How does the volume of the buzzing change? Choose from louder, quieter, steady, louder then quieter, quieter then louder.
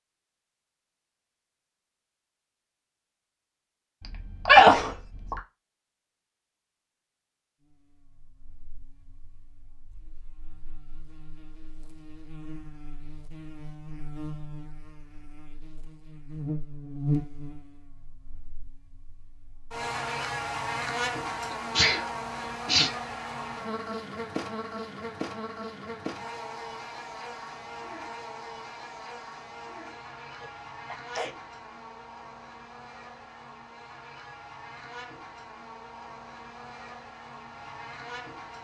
louder then quieter.